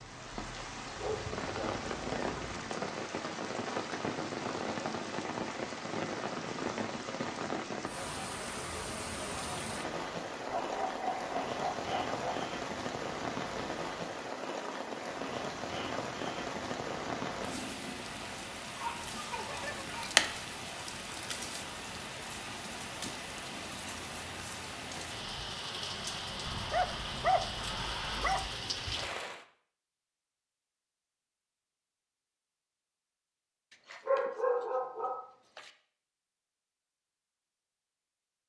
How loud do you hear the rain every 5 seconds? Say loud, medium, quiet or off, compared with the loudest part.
loud, loud, loud, loud, loud, loud, off, off.